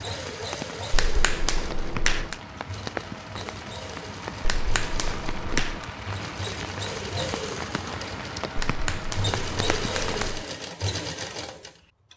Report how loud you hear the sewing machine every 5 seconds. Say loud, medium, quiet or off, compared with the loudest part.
medium, loud, loud.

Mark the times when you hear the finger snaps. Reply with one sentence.
You can hear the finger snaps from 0.9 to 2.4 s, from 4.4 to 5.8 s and from 8.6 to 10.4 s.